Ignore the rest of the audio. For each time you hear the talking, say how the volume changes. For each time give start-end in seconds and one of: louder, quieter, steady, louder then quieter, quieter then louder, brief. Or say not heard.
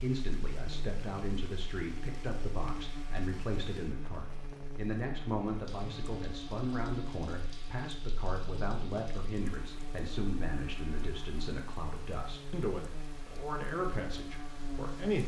0.0-15.2 steady.